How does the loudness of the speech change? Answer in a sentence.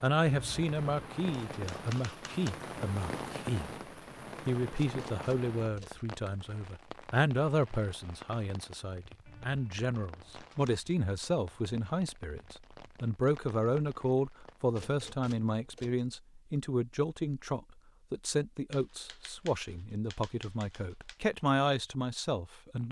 The volume of the speech stays about the same.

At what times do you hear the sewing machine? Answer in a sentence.
You can't hear the sewing machine here.